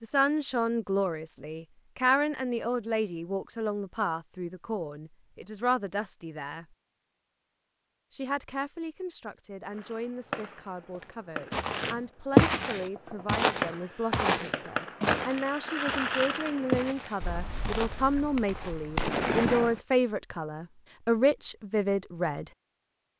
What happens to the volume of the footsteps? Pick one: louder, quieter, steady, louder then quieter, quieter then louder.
quieter.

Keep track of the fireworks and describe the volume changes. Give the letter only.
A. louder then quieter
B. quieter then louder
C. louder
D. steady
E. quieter
C.